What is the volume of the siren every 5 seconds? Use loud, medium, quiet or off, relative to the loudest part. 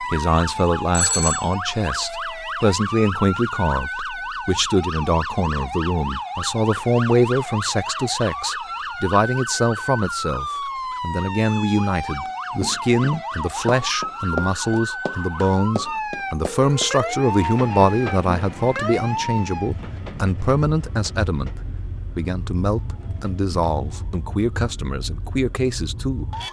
loud, loud, loud, loud, medium, medium.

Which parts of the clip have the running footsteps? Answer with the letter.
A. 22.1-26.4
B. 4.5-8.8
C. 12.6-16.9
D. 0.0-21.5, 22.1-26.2
C.